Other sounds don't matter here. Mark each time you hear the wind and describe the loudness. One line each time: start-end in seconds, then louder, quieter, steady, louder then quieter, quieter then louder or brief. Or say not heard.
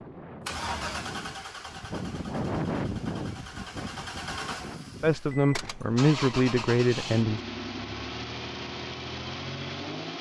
0.0-5.9 louder then quieter.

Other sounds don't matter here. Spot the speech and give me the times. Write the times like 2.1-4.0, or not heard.
5.0-7.4.